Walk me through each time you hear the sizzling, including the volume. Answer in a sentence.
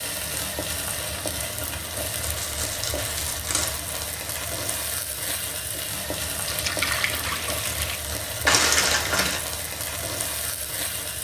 You can hear the sizzling from 0.0 to 11.1 s, at a steady volume.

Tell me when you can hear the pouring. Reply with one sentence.
The pouring can be heard from 6.5 to 8.0 s.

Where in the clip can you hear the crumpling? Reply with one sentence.
You can hear the crumpling from 2.2 to 3.9 s and from 8.4 to 9.4 s.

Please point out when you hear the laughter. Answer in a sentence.
You can't hear the laughter here.